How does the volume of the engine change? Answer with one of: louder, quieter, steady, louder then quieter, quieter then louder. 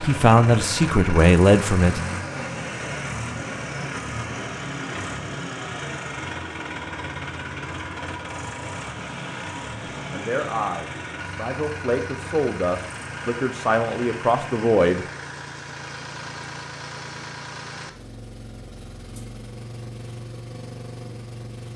quieter.